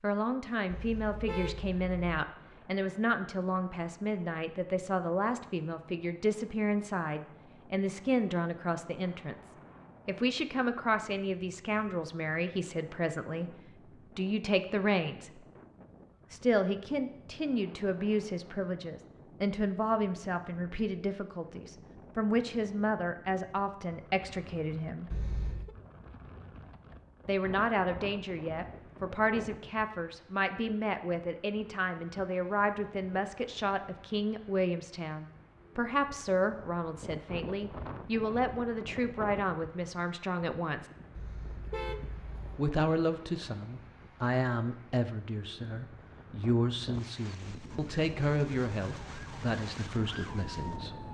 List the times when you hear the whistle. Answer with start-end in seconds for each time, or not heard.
not heard.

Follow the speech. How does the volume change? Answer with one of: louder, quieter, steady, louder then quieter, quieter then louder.
steady.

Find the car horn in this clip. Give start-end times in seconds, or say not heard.
0.7-2.1, 25.1-25.8, 41.1-42.6.